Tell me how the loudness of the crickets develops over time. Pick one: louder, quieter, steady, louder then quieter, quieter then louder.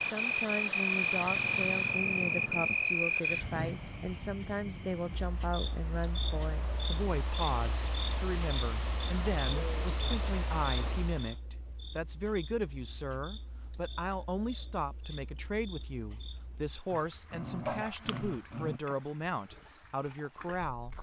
quieter then louder.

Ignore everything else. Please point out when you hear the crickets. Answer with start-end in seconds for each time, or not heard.
0.1-20.9.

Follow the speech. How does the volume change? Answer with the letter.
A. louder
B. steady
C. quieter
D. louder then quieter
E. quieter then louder
B.